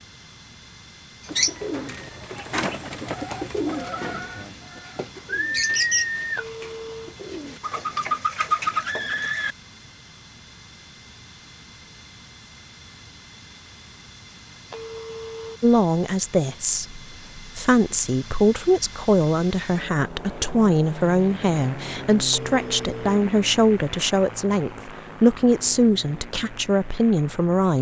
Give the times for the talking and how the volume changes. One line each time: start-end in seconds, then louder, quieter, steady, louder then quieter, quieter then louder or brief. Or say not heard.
15.6-27.7 steady.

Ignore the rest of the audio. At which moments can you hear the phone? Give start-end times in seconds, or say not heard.
6.3-7.2, 14.7-15.6, 22.3-23.2.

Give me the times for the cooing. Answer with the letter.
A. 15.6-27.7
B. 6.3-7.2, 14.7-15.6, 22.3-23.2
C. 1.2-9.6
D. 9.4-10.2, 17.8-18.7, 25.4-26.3
C.